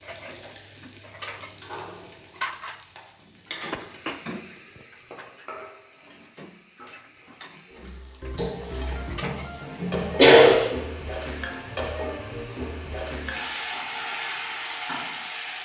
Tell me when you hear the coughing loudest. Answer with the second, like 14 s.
10 s.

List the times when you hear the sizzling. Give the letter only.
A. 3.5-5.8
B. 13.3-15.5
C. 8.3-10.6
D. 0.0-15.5
D.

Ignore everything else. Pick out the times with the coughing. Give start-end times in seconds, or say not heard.
8.3-10.6.